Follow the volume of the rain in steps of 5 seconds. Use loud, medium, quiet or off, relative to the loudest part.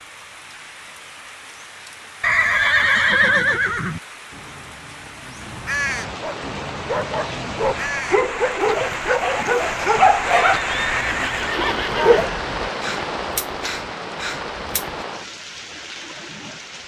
quiet, loud, loud, medium.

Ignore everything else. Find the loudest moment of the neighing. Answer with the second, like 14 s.
3 s.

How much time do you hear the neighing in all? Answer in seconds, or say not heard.
4 s.